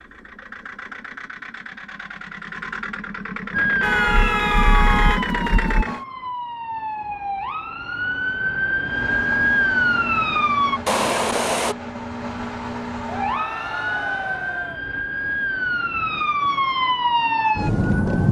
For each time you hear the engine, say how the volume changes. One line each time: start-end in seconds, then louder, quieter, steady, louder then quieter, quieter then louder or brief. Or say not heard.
0.0-6.0 louder
8.8-13.4 steady.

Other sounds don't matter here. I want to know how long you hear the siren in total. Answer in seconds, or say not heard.
12 s.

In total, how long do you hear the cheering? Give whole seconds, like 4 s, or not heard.
2 s.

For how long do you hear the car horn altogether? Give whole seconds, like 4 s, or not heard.
3 s.